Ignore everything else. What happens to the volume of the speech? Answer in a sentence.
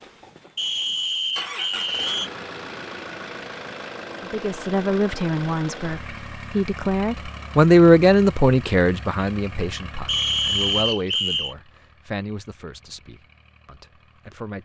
The volume of the speech goes up, then down.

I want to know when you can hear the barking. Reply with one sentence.
You can't hear the barking here.